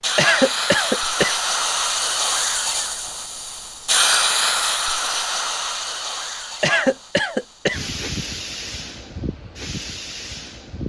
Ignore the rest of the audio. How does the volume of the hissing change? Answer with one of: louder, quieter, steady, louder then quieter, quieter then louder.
quieter.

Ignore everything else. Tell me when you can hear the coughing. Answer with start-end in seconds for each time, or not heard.
0.1-1.4, 6.6-7.8.